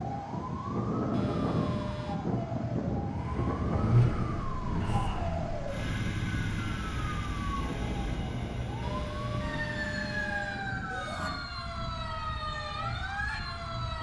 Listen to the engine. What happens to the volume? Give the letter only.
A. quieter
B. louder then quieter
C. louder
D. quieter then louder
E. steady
A.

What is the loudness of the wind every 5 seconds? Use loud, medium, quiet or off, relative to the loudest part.
loud, medium, medium.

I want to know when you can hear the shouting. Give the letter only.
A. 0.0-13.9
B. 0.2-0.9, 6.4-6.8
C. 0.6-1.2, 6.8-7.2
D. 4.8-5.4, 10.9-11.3
D.